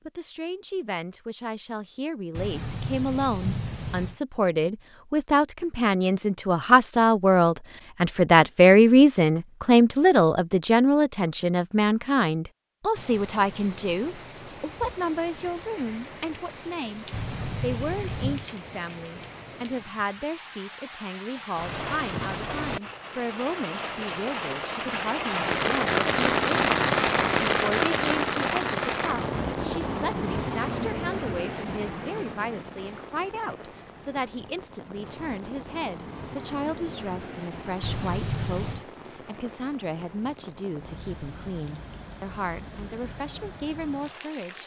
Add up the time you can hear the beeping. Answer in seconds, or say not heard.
4 s.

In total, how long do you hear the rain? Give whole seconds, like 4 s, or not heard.
32 s.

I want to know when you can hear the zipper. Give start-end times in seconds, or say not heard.
not heard.